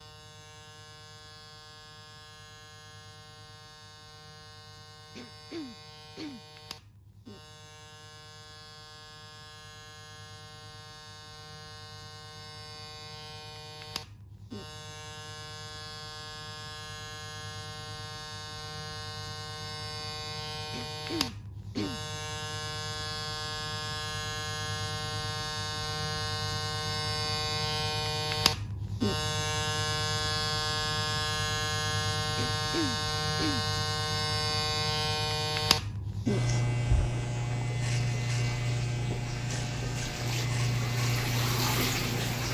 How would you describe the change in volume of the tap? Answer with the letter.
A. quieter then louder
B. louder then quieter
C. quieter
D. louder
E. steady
D.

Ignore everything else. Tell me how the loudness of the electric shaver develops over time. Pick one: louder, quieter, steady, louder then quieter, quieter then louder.
louder.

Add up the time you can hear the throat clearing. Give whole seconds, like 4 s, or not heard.
4 s.